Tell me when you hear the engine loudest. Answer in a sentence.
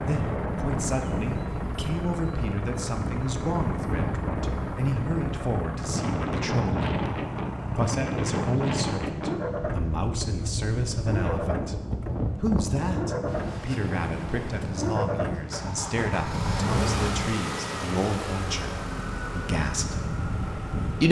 The loudest moment of the engine is at 17 seconds.